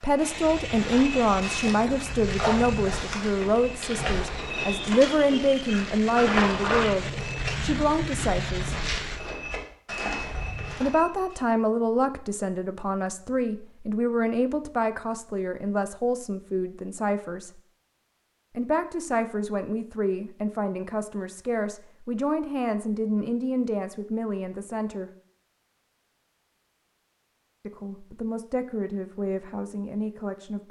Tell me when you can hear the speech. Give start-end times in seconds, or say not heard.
0.0-8.8, 10.8-17.6, 18.6-25.1, 27.6-30.6.